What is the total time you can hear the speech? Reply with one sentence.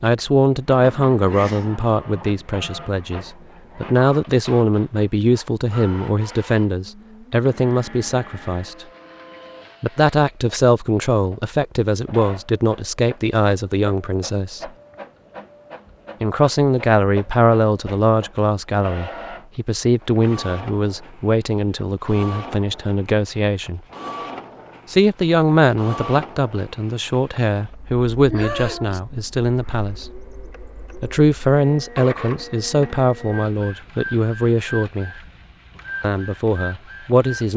The speech can be heard for 32 seconds in total.